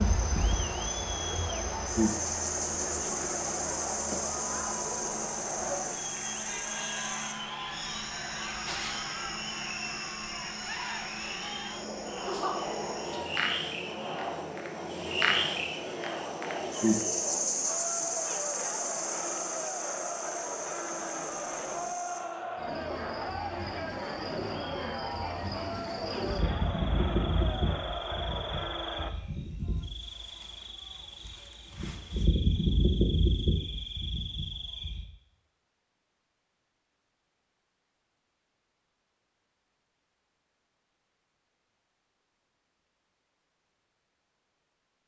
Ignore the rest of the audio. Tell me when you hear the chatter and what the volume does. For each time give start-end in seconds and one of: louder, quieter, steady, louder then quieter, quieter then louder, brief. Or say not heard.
0.0-29.1 steady.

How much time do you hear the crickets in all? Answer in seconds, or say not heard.
35 s.